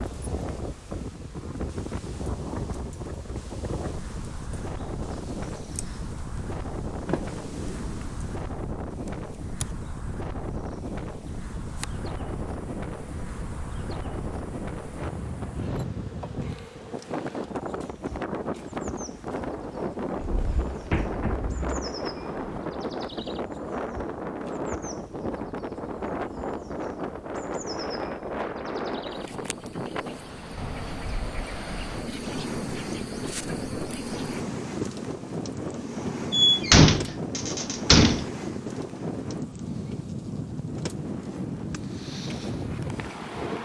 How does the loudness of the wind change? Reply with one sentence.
The volume of the wind stays about the same.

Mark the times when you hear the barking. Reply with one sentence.
The barking can't be heard in this clip.